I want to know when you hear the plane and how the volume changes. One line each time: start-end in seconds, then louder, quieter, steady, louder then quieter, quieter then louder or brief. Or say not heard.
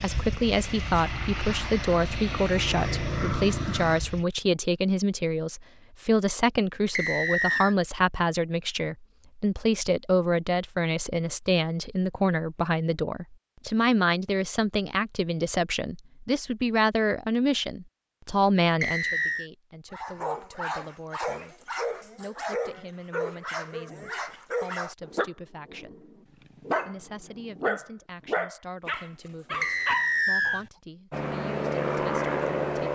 0.0-4.2 louder
31.1-32.9 brief.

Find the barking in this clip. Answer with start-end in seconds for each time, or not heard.
19.9-30.8.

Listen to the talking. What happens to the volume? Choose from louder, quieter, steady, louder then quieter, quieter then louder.
quieter.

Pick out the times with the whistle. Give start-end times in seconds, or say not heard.
7.0-7.8, 18.8-19.4, 29.6-30.6.